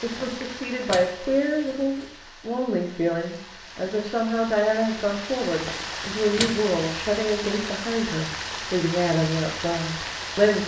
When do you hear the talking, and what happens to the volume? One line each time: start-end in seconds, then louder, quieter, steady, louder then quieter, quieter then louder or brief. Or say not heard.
0.0-10.6 steady.